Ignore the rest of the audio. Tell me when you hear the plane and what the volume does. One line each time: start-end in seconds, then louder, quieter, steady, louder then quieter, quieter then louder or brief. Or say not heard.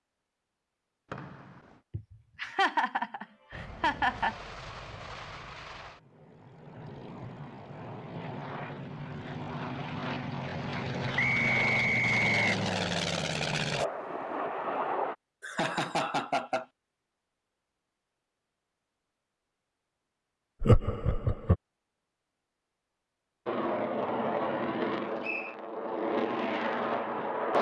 3.5-15.2 louder
23.4-27.5 quieter then louder.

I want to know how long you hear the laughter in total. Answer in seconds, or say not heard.
5 s.